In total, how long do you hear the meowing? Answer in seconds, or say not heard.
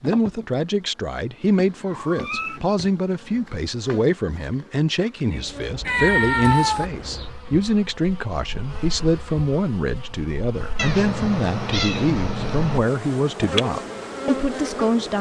4 s.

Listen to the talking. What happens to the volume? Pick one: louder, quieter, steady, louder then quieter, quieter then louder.
steady.